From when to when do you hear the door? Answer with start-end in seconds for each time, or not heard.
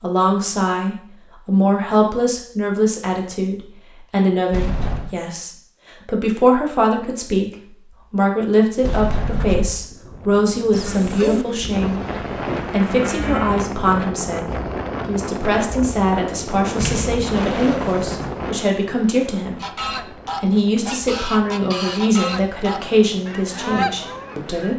4.5-5.2, 8.8-9.8, 16.8-18.3.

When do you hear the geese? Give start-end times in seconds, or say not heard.
10.7-12.2, 19.6-24.7.